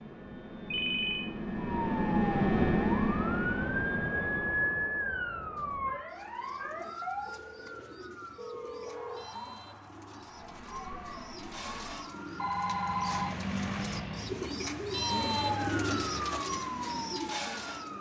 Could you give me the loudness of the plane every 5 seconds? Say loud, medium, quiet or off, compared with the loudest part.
loud, off, medium, off.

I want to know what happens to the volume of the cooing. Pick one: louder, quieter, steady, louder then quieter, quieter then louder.
louder.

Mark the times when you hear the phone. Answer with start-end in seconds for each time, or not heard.
0.7-1.3, 7.2-9.2, 12.3-13.4.